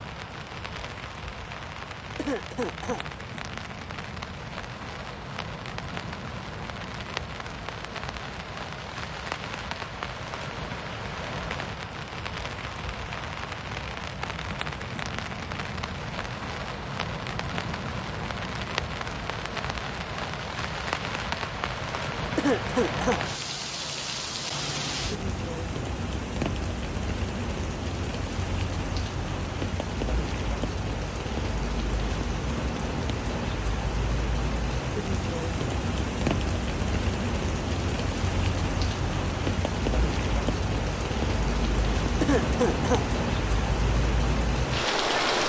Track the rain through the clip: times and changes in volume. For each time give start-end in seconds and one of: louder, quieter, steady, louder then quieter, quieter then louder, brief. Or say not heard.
0.0-45.4 louder.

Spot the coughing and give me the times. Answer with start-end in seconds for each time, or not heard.
2.1-3.0, 22.4-23.2, 42.2-43.0.